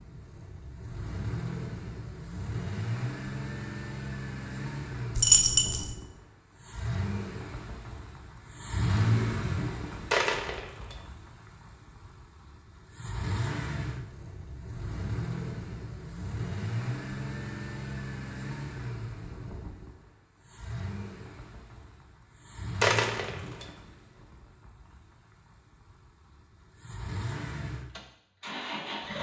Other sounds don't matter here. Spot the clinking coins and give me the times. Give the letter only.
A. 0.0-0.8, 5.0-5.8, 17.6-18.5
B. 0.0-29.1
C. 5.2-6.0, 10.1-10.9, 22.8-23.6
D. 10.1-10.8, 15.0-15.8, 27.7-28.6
C.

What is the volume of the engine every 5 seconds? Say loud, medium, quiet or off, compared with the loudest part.
loud, loud, medium, loud, medium, medium.